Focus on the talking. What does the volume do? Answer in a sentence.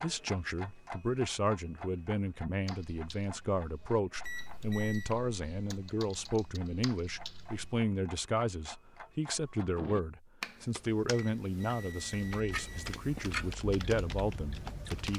The volume of the talking stays about the same.